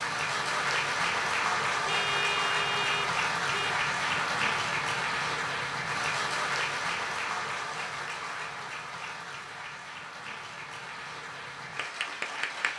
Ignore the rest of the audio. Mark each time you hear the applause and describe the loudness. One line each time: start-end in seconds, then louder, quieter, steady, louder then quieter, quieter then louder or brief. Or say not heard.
0.0-12.7 quieter.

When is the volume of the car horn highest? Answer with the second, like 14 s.
2 s.